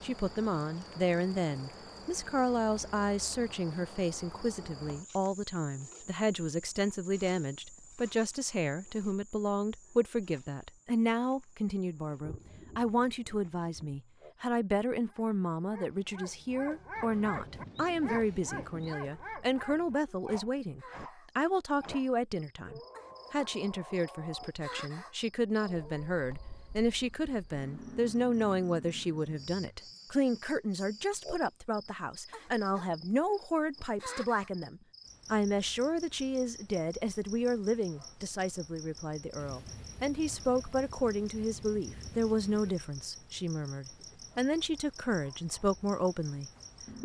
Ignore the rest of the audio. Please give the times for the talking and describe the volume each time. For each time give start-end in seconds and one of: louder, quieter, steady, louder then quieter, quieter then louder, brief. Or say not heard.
0.0-46.9 steady.